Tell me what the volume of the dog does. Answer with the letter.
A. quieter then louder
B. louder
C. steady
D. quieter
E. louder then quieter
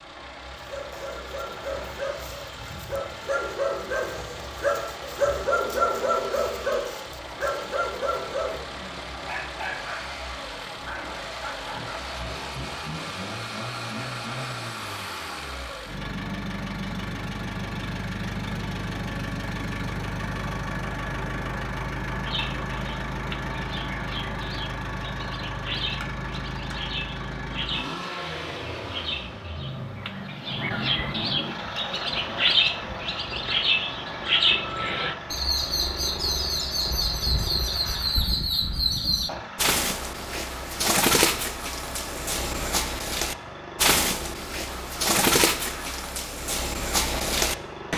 E.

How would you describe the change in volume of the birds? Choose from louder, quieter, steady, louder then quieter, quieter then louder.
louder.